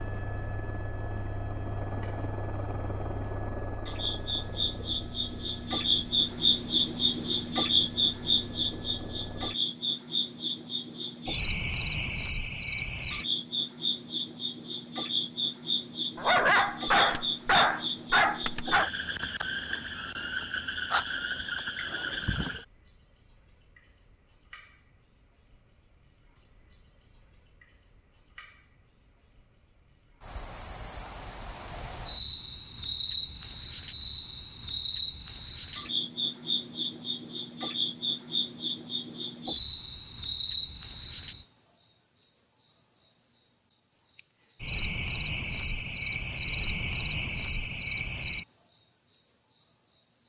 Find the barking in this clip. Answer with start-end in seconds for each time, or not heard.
16.1-18.9.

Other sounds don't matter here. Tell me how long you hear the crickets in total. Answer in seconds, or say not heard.
50 s.